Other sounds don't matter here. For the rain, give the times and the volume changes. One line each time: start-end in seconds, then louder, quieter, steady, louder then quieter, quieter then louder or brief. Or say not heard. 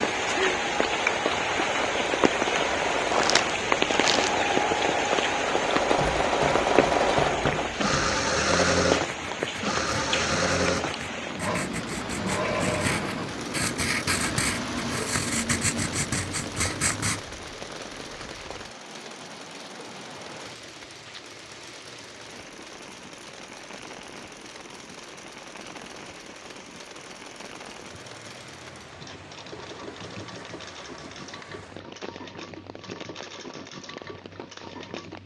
0.0-35.2 quieter.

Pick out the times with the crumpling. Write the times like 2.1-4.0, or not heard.
3.1-4.3.